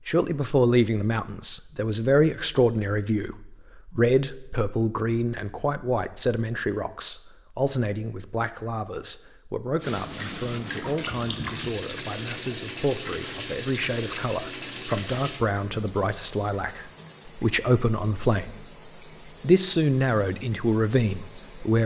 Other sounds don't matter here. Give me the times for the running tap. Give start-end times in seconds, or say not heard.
9.8-21.8.